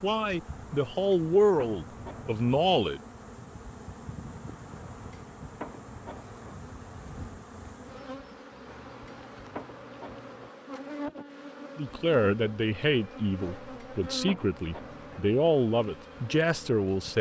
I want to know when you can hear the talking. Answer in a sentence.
You can hear the talking from 0.0 to 3.0 s and from 11.8 to 17.1 s.